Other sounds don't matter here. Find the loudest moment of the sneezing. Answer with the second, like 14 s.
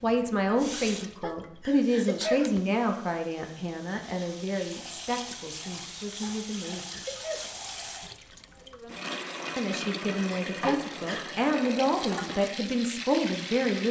2 s.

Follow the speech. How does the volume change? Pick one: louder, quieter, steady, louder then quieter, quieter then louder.
quieter then louder.